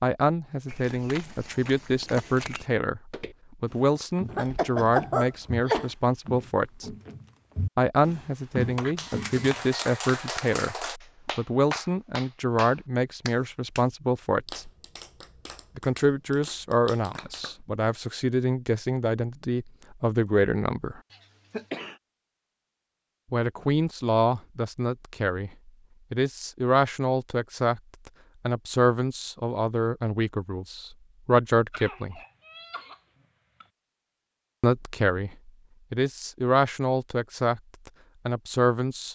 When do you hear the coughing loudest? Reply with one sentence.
The volume of the coughing peaks at 5 seconds.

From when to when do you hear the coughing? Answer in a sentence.
The coughing can be heard from 4.2 to 5.9 s, from 21.1 to 22.0 s and from 31.7 to 33.6 s.